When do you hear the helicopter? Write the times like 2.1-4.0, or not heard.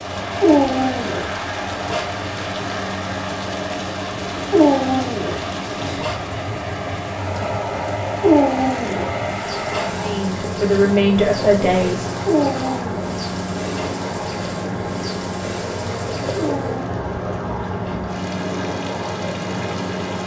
0.0-20.2.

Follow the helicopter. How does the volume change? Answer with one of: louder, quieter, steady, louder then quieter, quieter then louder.
steady.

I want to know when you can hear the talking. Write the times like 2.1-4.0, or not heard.
10.0-12.1.